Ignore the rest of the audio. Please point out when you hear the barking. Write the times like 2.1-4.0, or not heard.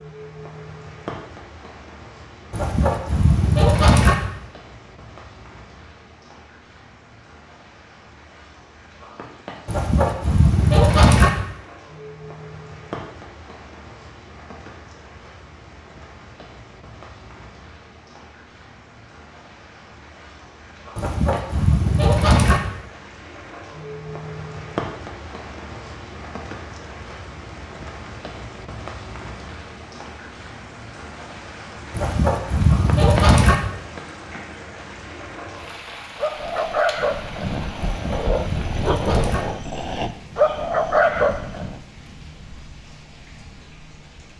36.1-41.8.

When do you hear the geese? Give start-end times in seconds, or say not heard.
2.5-4.2, 9.7-11.3, 20.9-22.6, 31.9-33.5, 37.8-39.5.